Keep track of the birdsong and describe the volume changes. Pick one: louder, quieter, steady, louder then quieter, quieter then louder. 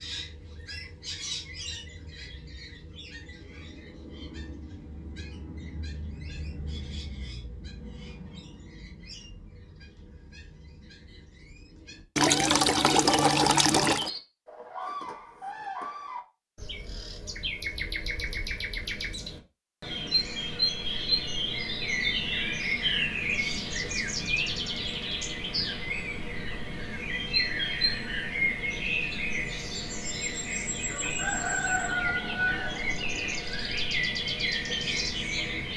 louder.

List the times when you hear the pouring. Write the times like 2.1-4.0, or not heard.
12.2-14.1, 30.9-33.5.